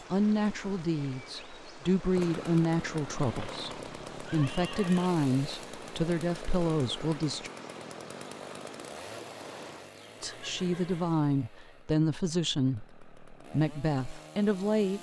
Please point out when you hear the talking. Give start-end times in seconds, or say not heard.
0.1-7.5, 10.2-14.9.